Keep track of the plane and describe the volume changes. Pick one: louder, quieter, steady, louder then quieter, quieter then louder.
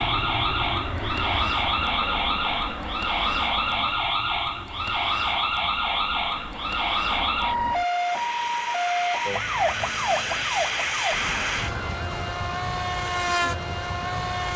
quieter then louder.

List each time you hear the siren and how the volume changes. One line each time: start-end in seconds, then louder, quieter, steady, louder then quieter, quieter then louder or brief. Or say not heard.
0.0-14.5 quieter.